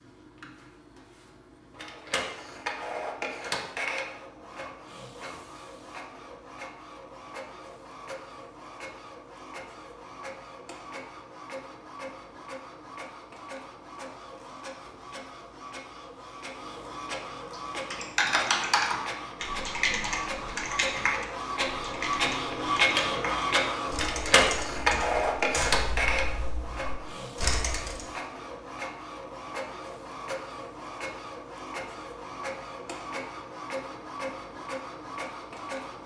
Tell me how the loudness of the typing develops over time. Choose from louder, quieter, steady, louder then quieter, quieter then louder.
quieter.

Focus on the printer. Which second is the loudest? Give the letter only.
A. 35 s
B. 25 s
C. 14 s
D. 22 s
B.